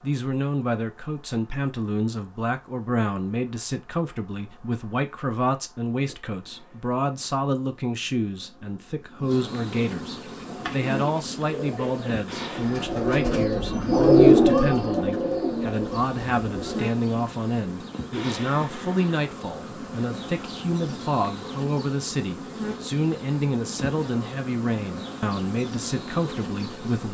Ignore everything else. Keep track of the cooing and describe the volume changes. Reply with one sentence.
The volume of the cooing goes up, then down.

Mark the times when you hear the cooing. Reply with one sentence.
You can hear the cooing from 10.2 to 16.9 s.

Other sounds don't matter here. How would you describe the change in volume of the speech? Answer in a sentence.
The loudness of the speech stays about the same.